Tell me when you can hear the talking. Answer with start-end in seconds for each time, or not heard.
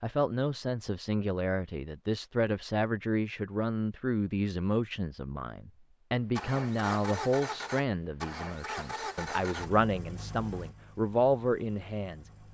0.0-12.3.